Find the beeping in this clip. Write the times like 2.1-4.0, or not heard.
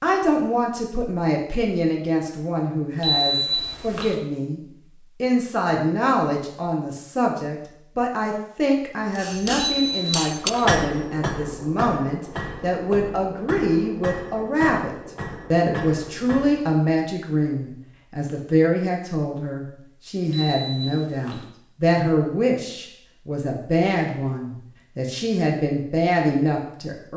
3.0-4.2, 9.6-10.7, 20.3-21.4.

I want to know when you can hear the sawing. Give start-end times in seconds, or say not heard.
not heard.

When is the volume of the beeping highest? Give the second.
3 s.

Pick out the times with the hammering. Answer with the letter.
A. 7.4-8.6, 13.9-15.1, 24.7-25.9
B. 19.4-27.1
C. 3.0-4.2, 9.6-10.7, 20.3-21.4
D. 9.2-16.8
D.